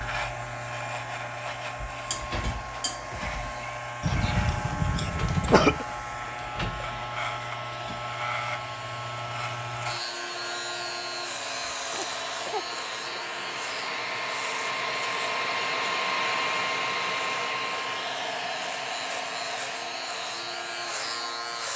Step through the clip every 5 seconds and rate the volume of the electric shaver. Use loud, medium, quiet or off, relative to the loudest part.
loud, loud, loud, medium, loud.